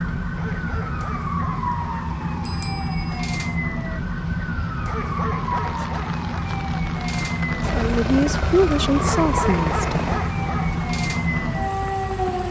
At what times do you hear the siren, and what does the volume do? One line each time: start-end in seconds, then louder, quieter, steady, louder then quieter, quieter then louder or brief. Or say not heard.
0.0-12.4 steady.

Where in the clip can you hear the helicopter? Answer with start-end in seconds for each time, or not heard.
7.6-10.2.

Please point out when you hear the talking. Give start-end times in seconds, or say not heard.
7.7-10.2.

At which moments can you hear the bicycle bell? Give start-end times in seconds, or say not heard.
2.5-3.2.